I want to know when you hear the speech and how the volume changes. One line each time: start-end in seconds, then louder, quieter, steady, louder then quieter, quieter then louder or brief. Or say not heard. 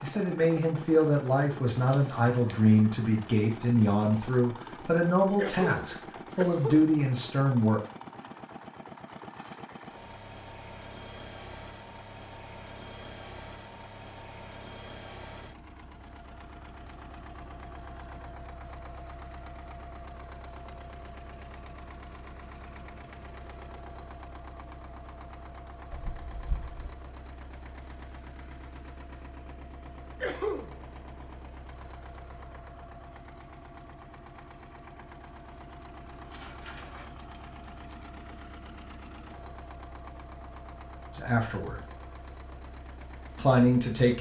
0.0-7.8 steady
41.1-41.8 brief
43.4-44.1 brief.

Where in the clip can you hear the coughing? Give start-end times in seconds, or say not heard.
5.3-6.9, 30.2-30.8.